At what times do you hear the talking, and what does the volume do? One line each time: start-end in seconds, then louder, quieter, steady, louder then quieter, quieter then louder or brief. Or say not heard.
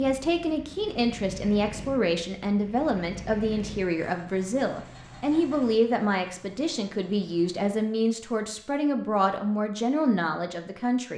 0.0-11.1 steady.